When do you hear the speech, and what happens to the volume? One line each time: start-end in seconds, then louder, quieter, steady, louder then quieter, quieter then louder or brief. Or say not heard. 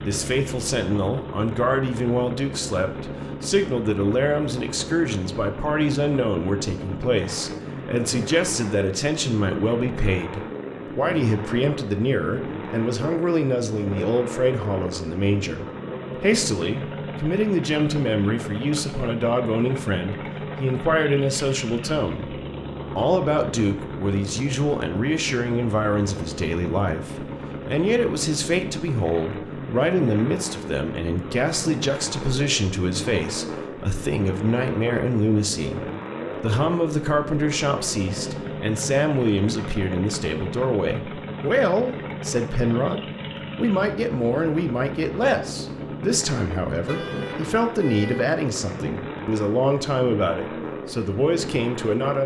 0.0-52.2 steady.